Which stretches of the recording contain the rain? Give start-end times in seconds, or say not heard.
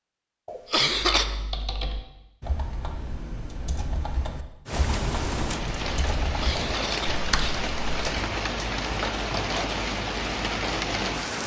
4.7-11.4.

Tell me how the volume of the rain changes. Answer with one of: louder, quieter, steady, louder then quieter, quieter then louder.
steady.